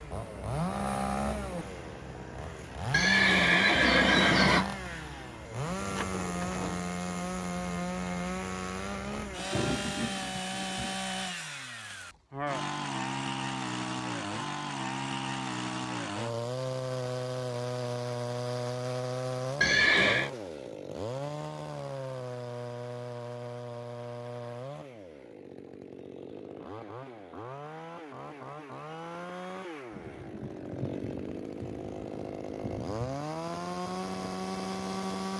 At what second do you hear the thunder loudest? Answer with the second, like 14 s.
10 s.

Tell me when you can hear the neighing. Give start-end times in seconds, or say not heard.
2.9-4.7, 19.6-20.3.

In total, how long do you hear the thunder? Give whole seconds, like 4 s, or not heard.
5 s.